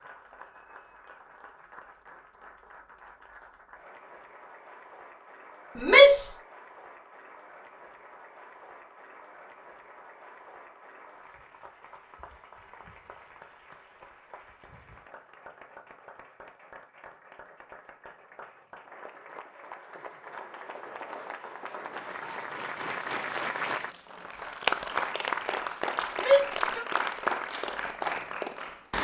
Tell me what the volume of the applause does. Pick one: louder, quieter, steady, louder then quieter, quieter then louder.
louder.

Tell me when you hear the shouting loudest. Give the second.
6 s.